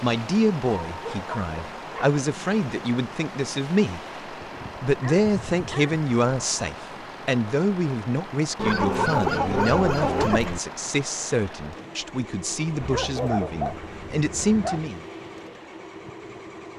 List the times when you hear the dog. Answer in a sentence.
The dog can be heard from 0.9 to 2.2 s, from 4.4 to 6.0 s, from 8.6 to 10.6 s and from 12.8 to 14.9 s.